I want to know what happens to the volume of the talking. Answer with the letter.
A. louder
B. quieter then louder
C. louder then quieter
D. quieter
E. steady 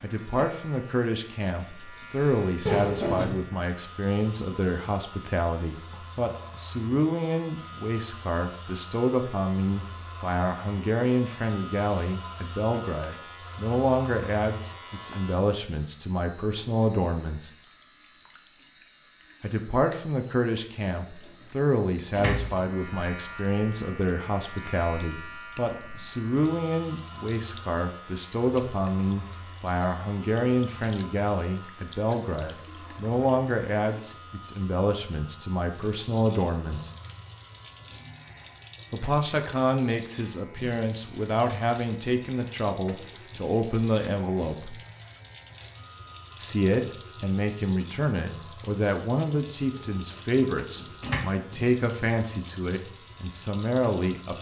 E.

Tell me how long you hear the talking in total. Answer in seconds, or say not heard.
49 s.